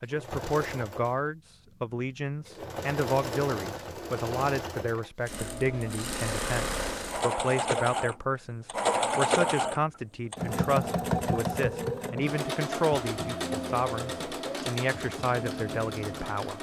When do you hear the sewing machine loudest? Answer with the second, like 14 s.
9 s.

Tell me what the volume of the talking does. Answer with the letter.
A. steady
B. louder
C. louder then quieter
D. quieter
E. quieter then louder
A.